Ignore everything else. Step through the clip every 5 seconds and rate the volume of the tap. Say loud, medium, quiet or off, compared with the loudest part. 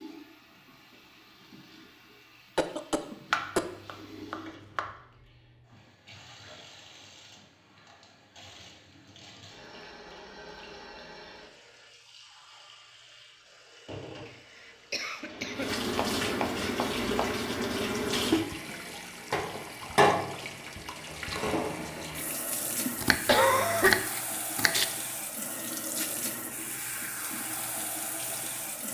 quiet, quiet, quiet, loud, loud, medium.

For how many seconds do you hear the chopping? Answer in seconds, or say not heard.
5 s.